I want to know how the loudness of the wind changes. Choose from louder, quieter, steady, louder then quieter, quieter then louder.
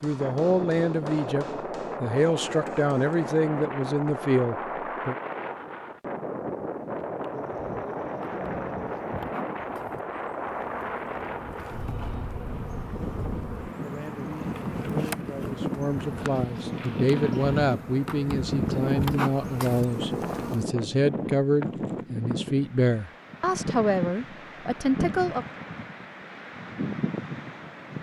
steady.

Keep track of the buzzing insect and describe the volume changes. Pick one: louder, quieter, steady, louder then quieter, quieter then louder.
louder.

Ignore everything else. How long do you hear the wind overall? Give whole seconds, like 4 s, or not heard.
28 s.